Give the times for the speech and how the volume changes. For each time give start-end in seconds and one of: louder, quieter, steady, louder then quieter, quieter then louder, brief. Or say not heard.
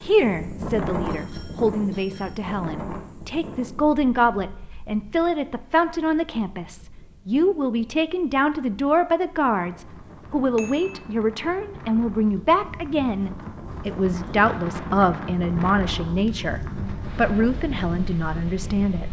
0.0-19.0 steady.